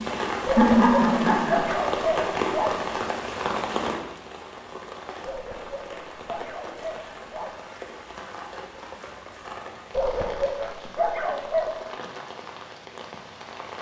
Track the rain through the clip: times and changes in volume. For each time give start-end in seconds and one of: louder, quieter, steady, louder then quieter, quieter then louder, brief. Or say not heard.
0.0-13.7 quieter.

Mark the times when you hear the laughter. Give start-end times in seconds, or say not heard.
0.6-1.7.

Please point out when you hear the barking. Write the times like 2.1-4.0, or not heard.
0.5-2.8, 5.2-7.5, 9.9-11.7.